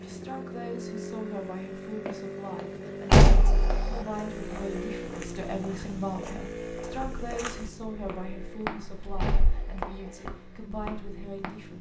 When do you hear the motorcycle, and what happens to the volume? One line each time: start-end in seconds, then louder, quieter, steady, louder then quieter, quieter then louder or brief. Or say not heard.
0.0-11.7 quieter.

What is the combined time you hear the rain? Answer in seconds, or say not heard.
not heard.